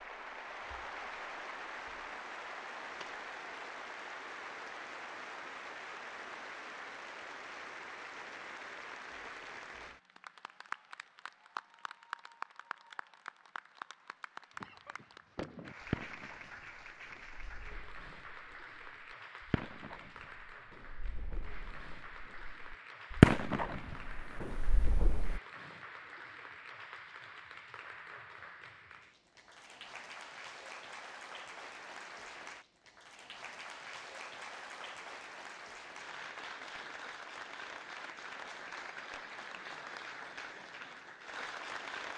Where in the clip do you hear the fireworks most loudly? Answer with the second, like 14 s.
23 s.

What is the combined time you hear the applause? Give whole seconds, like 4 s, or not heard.
42 s.